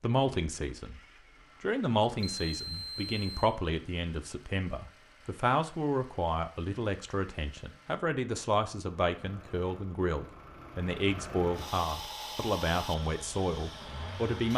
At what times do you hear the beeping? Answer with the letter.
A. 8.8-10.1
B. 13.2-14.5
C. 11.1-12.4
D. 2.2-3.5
D.